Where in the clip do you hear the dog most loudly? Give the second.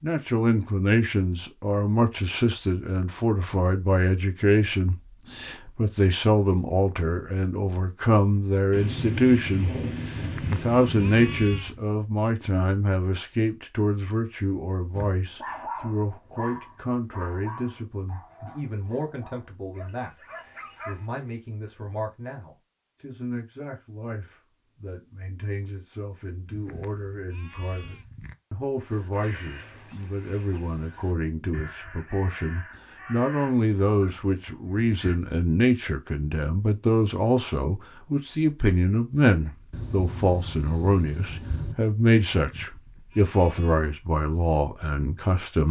16 s.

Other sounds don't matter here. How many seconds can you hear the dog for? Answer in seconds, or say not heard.
6 s.